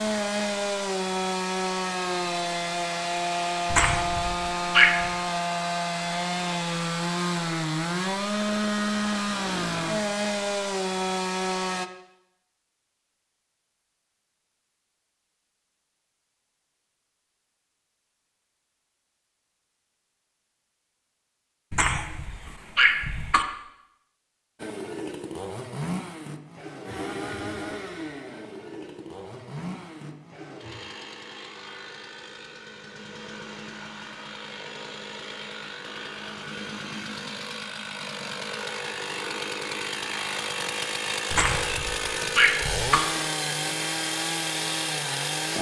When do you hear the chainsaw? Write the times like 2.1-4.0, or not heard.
0.0-11.9, 24.6-45.5.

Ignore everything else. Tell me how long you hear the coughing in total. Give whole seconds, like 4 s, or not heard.
5 s.